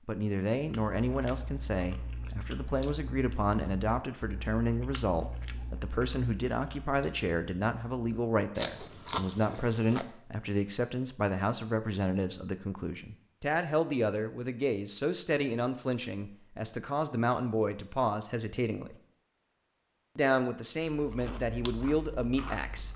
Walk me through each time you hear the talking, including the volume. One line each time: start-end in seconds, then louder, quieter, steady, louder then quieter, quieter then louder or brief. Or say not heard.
0.1-18.9 steady
20.1-22.9 brief.